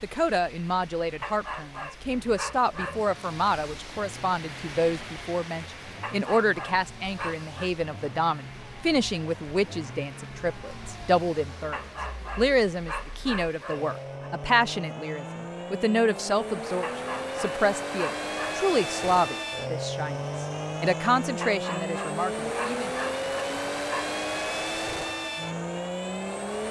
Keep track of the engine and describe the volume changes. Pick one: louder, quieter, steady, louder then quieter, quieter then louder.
louder.